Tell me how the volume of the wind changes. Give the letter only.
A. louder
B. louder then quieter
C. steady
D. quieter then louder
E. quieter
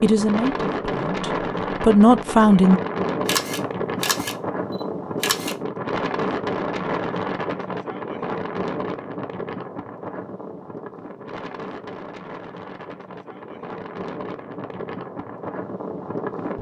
E.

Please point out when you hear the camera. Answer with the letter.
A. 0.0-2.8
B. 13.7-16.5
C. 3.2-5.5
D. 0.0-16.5
C.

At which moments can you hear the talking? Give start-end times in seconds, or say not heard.
0.0-2.8.